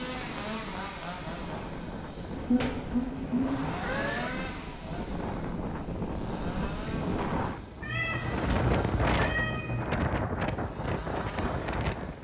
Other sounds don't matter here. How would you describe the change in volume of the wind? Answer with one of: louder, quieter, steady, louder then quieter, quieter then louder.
louder.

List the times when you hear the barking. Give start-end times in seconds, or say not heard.
not heard.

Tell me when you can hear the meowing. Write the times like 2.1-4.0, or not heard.
2.3-4.3, 7.8-9.8.